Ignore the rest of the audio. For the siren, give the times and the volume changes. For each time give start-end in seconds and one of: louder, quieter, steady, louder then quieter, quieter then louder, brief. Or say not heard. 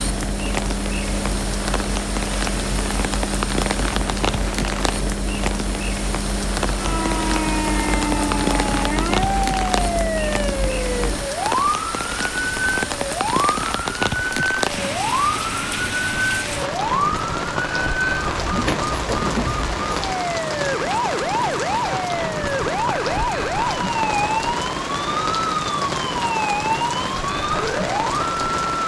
6.7-28.8 steady.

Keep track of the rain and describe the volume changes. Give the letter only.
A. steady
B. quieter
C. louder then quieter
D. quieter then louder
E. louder
A.